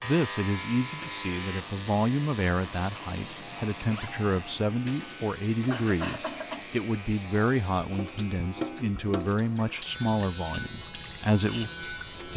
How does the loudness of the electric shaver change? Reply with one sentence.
The loudness of the electric shaver goes down, then up.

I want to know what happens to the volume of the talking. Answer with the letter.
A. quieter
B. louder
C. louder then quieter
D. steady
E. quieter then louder
D.